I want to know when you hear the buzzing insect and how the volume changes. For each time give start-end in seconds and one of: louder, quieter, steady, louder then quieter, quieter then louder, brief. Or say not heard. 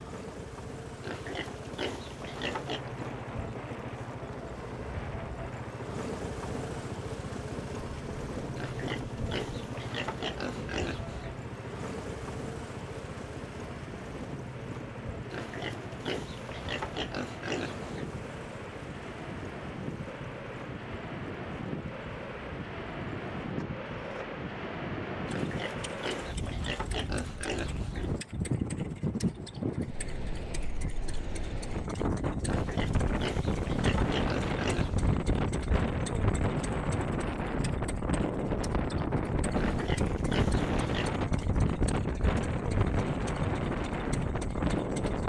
not heard.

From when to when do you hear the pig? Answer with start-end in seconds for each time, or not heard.
1.0-2.9, 8.6-11.3, 15.3-18.1, 25.2-28.1, 32.5-35.1, 39.5-41.1.